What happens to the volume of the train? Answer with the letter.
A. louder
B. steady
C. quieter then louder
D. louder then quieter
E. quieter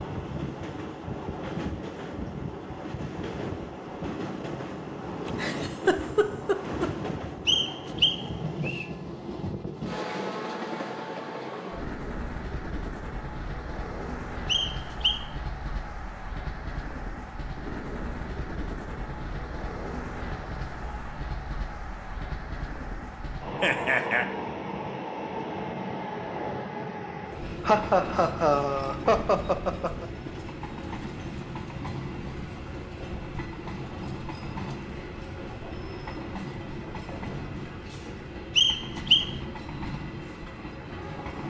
B.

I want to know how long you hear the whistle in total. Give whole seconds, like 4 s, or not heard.
3 s.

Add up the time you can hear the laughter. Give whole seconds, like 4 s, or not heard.
5 s.